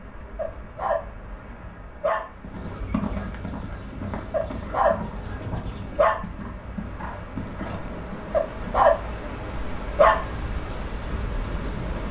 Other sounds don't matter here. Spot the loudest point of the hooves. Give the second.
3 s.